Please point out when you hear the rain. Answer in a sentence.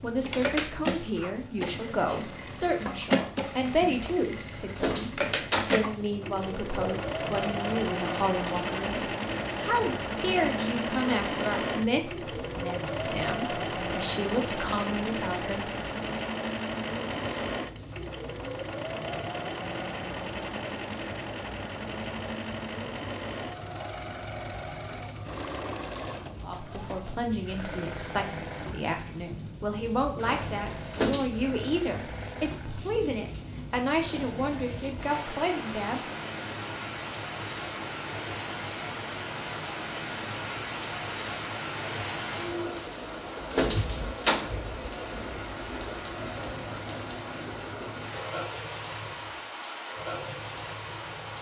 The rain can be heard from 0.0 to 51.3 s.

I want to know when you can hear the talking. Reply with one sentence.
The talking can be heard from 0.0 to 15.7 s and from 26.4 to 36.0 s.